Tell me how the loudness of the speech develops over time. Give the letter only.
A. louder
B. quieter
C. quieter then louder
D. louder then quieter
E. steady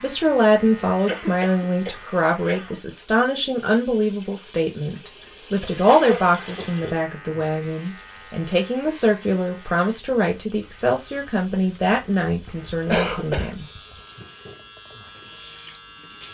E.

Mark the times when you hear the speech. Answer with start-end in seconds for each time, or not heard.
0.0-13.7.